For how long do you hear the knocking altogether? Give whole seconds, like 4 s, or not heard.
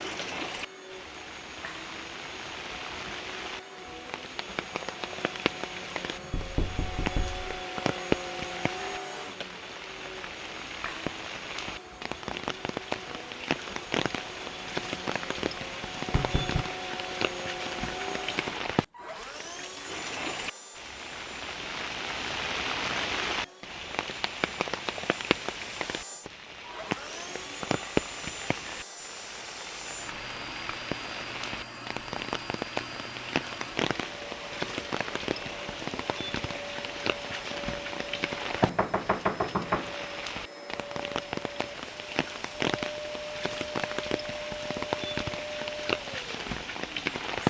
3 s.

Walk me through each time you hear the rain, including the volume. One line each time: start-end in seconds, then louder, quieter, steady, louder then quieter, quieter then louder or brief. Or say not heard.
0.0-47.4 steady.